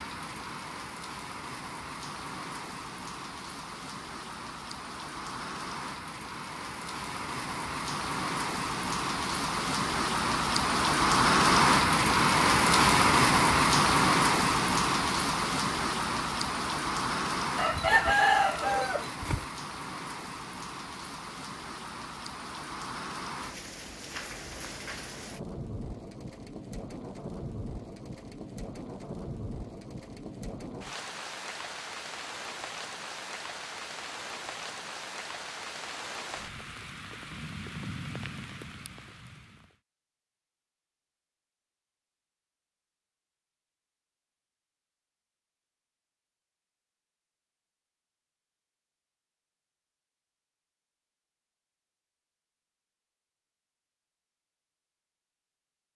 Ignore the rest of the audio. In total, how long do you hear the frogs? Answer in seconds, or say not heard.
not heard.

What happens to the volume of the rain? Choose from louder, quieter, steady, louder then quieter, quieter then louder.
louder then quieter.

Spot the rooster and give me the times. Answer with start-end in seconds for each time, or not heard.
17.6-19.4.